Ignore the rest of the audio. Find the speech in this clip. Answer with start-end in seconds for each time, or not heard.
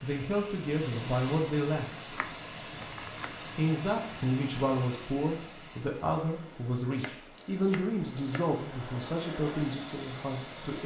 0.0-2.1, 3.5-10.8.